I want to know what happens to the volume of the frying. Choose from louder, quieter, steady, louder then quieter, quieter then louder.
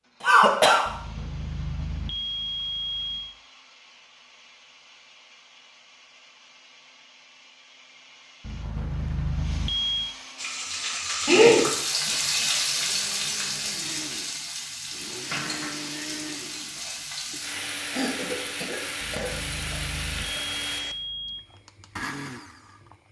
quieter.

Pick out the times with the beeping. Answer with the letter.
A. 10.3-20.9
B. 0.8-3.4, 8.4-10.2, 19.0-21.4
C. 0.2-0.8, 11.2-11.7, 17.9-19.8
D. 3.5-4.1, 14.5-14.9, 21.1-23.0
B.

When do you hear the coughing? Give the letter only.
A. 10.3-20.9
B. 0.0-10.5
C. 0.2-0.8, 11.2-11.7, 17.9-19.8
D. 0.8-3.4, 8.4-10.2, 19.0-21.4
C.